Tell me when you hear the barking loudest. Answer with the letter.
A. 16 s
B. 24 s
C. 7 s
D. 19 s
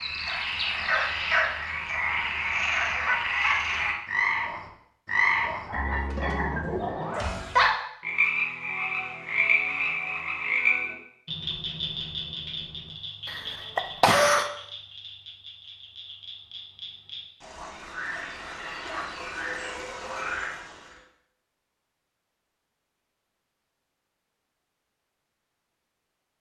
C.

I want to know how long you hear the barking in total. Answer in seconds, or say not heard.
2 s.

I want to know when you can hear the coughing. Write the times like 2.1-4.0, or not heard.
13.2-14.5.